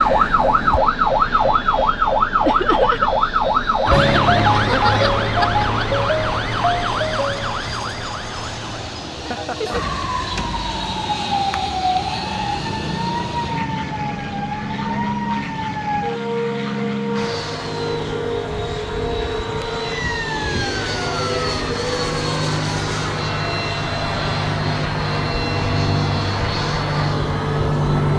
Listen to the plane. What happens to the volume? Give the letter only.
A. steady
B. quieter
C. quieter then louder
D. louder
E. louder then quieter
D.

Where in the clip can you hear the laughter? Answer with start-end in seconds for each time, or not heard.
2.5-3.1.